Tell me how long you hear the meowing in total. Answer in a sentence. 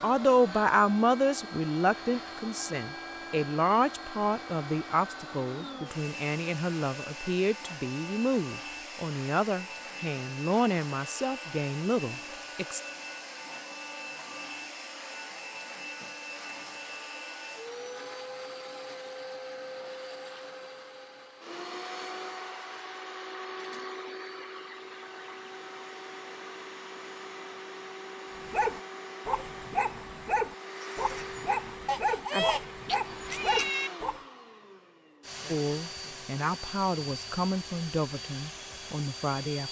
You can hear the meowing for 2 seconds altogether.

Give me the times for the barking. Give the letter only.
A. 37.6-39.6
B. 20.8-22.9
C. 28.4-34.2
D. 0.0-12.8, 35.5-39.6
C.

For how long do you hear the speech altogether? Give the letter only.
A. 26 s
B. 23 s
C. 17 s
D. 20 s
C.